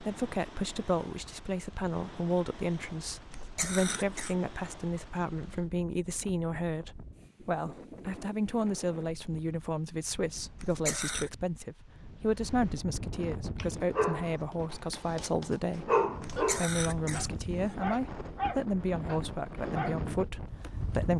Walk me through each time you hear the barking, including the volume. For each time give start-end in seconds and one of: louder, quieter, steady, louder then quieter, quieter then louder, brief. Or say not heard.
13.6-20.3 quieter.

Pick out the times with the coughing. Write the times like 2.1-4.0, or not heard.
3.3-4.3, 10.6-11.3, 16.2-17.8.